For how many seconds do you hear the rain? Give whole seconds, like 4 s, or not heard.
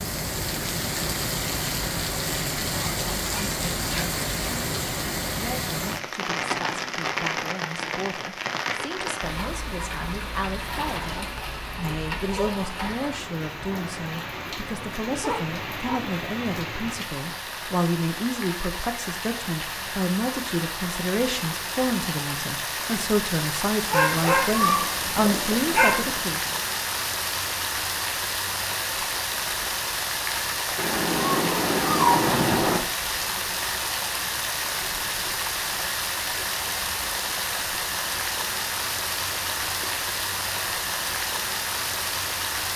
43 s.